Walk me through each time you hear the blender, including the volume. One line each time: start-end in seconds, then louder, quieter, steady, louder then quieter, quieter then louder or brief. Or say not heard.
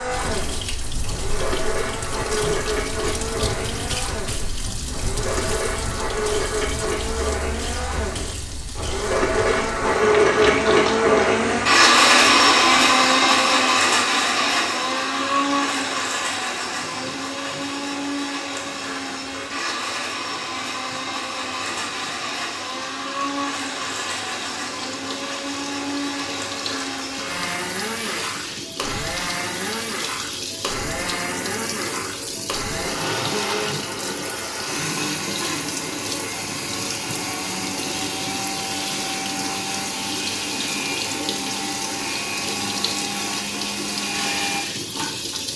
0.0-45.5 louder then quieter.